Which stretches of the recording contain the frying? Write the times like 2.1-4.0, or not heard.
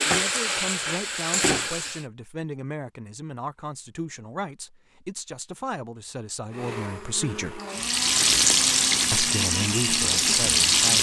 0.0-2.0, 7.7-10.9.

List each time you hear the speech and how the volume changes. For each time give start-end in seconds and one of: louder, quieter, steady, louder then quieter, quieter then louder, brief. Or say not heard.
0.1-7.6 steady
9.1-10.9 brief.